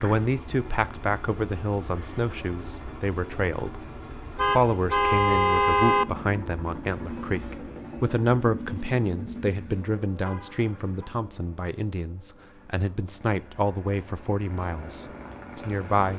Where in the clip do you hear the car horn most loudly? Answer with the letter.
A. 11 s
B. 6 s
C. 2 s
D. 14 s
B.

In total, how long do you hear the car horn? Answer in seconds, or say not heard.
3 s.